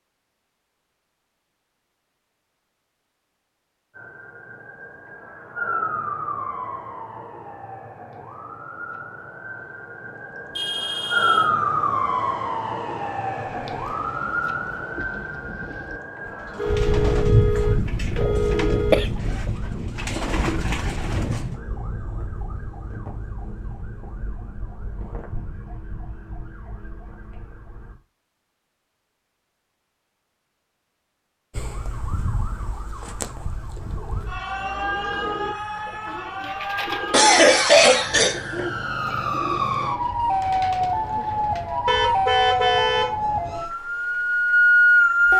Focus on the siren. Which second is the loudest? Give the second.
45 s.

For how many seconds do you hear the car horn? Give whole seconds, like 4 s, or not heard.
5 s.